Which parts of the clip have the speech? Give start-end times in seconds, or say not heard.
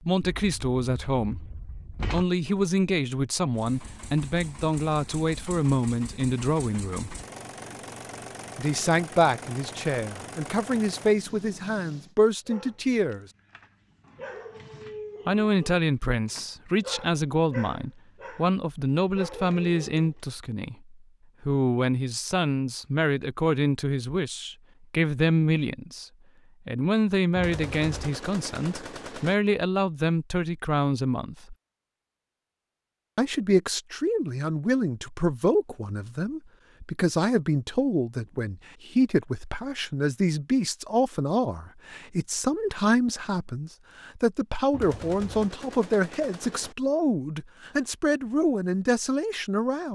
0.0-7.2, 8.6-13.2, 15.2-26.1, 26.6-31.6, 33.1-49.9.